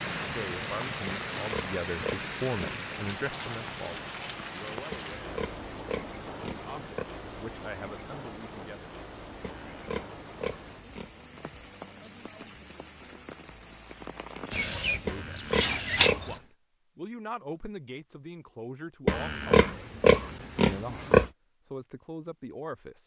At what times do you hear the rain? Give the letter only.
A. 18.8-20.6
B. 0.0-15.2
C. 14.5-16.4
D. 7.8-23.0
B.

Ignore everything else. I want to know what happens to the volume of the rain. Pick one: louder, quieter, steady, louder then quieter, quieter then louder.
quieter.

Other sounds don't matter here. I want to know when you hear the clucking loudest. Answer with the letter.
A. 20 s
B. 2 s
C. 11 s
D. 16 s
D.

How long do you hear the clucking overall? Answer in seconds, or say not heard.
2 s.